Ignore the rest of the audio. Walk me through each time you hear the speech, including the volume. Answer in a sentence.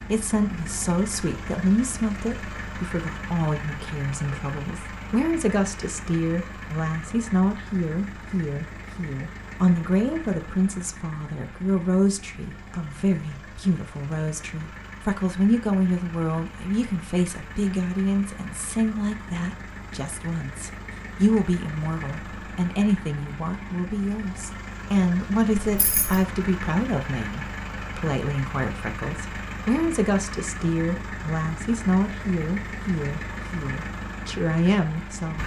The speech can be heard from 0.1 to 35.4 s, at a steady volume.